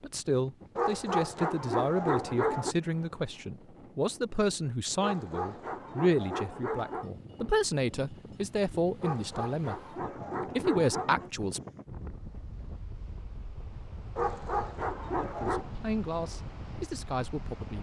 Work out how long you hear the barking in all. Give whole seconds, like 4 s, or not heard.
8 s.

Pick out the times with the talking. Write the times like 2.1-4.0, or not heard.
0.0-9.8, 10.6-11.6, 15.3-17.7.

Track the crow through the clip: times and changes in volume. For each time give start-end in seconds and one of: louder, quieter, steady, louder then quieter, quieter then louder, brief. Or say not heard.
not heard.